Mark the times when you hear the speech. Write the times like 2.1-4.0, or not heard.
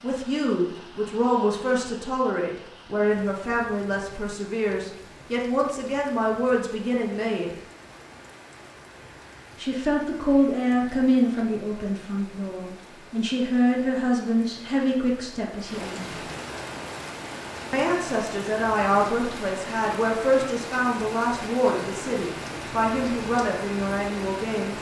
0.0-7.5, 9.6-16.2, 17.7-24.7.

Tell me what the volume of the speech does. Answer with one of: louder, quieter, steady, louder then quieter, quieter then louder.
steady.